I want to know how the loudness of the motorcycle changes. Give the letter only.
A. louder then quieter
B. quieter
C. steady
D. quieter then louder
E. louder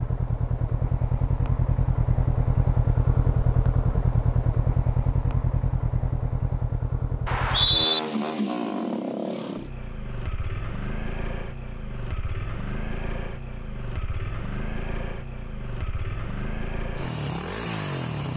B.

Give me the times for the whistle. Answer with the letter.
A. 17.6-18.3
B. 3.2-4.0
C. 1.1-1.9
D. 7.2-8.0
D.